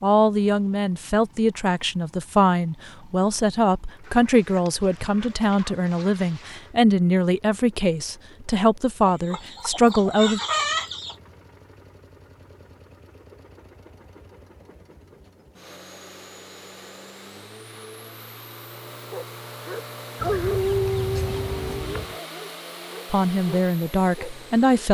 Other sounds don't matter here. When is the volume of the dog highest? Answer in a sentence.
The volume of the dog peaks at 21 seconds.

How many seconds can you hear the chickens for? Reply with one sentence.
The chickens can be heard for 7 seconds in total.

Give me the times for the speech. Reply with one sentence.
The speech can be heard from 0.0 to 10.4 s and from 23.1 to 24.8 s.